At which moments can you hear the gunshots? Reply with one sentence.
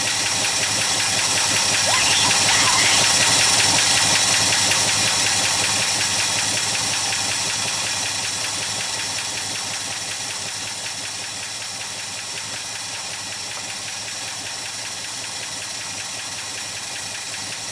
You can't hear the gunshots here.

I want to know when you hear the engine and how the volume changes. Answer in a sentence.
You can hear the engine from 0.0 to 17.6 s, getting quieter.